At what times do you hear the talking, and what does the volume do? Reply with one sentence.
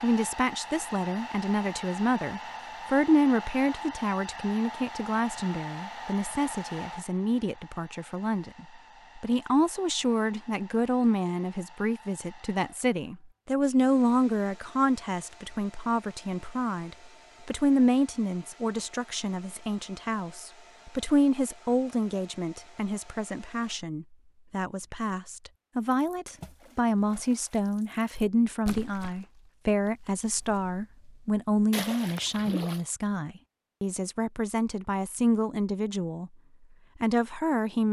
The talking can be heard from 0.0 to 36.3 s, at a steady volume; and briefly from 37.0 to 37.8 s.